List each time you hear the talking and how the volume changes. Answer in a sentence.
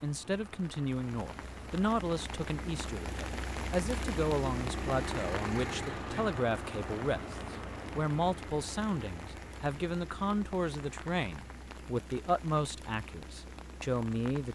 You can hear the talking from 0.0 to 14.4 s, at a steady volume.